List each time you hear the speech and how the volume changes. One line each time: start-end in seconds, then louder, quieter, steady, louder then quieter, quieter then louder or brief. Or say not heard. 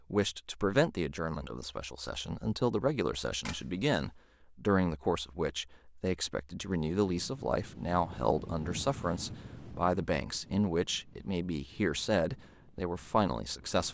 0.1-13.8 steady.